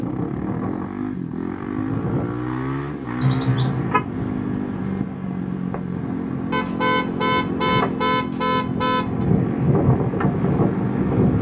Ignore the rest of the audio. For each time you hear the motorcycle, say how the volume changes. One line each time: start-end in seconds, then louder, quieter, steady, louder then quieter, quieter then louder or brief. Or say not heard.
0.0-11.3 steady.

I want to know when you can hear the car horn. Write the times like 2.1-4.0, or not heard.
3.2-4.0, 6.5-9.2.